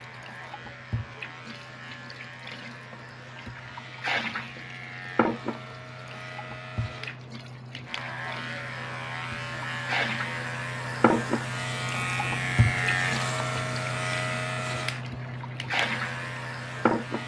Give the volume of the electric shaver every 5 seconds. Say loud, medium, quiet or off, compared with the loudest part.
quiet, medium, loud, medium.